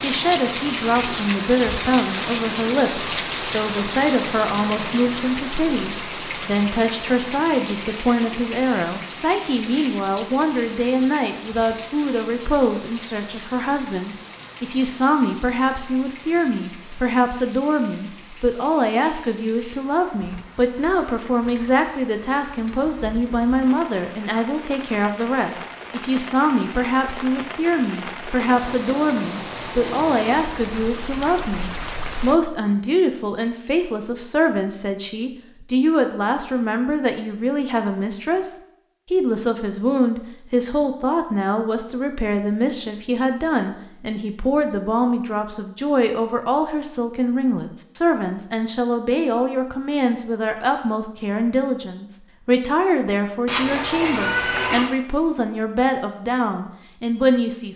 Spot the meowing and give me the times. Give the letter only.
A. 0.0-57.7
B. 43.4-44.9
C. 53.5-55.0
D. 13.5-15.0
C.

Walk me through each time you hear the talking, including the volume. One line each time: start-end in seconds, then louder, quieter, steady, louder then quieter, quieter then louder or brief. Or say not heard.
0.0-57.7 steady.